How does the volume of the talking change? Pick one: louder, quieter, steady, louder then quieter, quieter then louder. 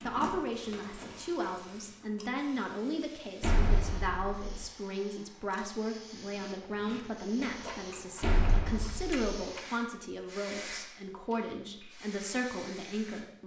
steady.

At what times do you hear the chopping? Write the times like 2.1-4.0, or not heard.
not heard.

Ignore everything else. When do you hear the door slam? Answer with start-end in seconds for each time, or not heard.
3.4-4.7, 8.2-9.4.